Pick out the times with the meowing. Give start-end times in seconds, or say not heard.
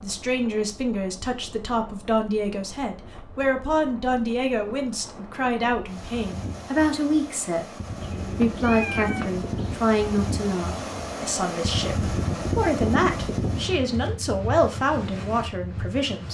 8.0-9.8.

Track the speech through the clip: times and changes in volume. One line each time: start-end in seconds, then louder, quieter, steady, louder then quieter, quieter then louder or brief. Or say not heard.
0.0-16.2 steady.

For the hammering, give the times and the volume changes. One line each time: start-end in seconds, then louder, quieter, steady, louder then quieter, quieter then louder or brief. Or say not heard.
not heard.